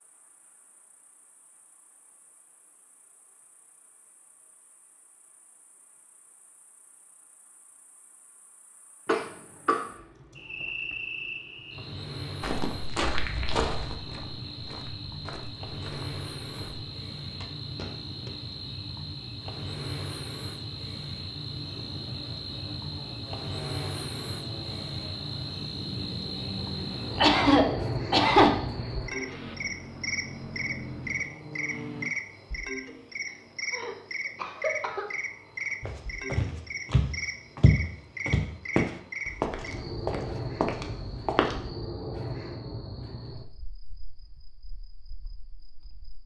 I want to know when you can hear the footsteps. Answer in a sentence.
The footsteps can be heard from 12.4 to 18.3 s and from 35.8 to 41.7 s.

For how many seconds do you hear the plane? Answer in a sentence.
You can hear the plane for 11 seconds altogether.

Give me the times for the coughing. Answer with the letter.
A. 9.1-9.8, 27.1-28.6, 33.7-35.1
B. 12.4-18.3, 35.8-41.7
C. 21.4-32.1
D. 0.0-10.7
A.